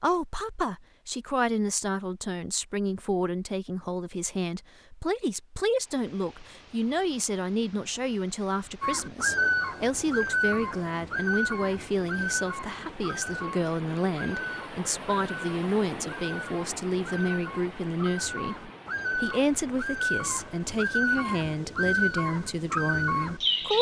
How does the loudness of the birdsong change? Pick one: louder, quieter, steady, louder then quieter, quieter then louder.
quieter then louder.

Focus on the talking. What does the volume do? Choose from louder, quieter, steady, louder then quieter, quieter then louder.
steady.